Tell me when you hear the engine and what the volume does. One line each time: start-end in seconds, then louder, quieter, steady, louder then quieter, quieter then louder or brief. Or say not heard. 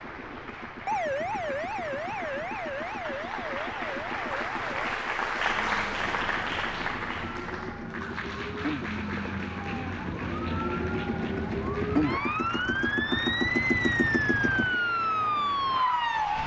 0.0-16.4 louder.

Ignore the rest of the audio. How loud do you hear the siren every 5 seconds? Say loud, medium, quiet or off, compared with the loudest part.
medium, medium, loud, loud.